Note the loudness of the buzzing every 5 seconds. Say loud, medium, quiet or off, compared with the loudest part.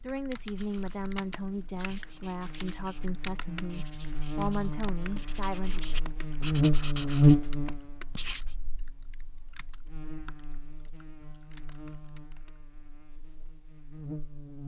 quiet, loud, quiet.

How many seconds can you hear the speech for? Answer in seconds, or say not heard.
6 s.